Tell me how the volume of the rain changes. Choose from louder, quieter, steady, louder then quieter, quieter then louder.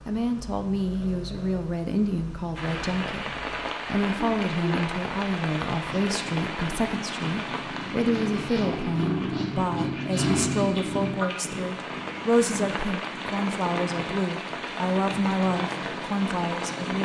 quieter then louder.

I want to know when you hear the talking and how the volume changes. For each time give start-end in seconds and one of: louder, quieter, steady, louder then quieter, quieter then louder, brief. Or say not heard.
0.1-17.0 steady.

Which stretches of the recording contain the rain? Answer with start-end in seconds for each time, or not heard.
2.5-17.0.